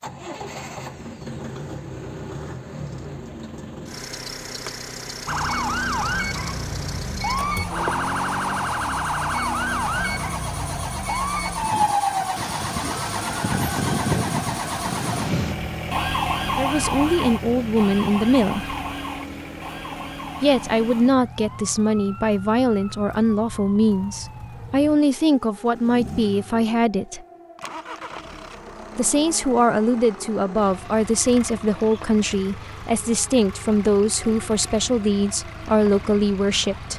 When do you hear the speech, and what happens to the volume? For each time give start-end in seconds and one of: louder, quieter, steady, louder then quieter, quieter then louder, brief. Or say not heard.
16.4-18.8 brief
20.4-27.2 steady
28.9-36.9 steady.